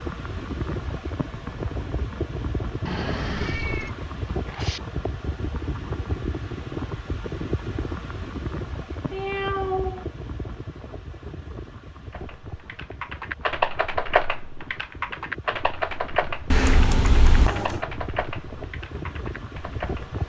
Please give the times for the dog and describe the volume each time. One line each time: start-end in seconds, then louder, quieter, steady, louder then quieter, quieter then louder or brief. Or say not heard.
not heard.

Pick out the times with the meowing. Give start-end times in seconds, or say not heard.
2.9-4.8, 9.1-10.1, 16.5-17.8.